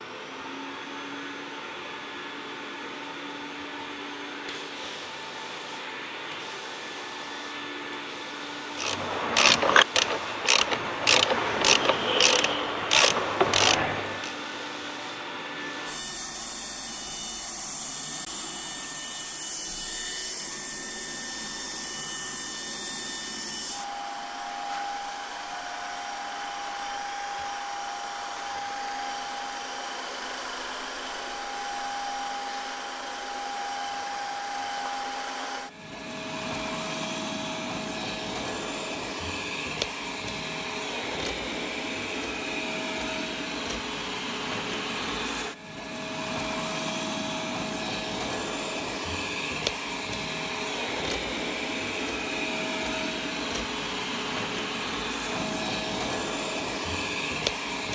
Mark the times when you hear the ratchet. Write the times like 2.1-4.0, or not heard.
8.8-14.3.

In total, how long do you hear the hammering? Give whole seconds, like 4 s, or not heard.
not heard.